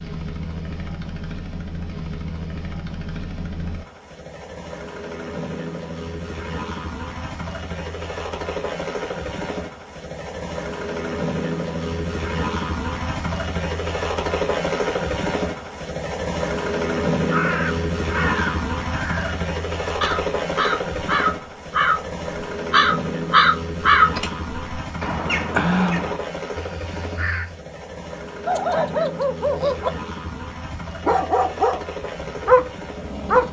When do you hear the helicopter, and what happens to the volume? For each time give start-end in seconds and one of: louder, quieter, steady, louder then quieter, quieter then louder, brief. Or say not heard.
0.0-33.4 louder then quieter.